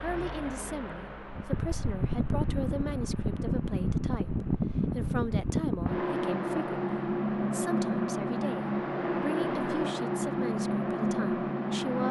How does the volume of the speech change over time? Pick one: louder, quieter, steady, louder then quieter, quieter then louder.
steady.